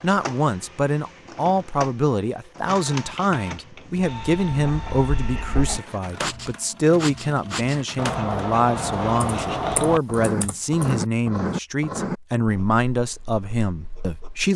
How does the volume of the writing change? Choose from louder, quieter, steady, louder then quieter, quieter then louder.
louder then quieter.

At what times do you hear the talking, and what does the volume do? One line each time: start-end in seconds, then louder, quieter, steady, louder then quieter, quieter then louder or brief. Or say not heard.
0.0-14.5 steady.